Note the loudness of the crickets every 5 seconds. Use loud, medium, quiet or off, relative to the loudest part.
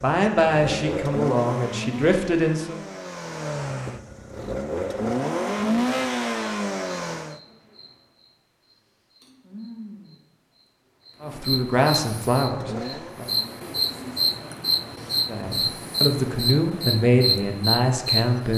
off, quiet, loud, loud.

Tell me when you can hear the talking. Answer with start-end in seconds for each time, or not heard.
0.0-2.8, 11.2-13.3, 15.2-18.5.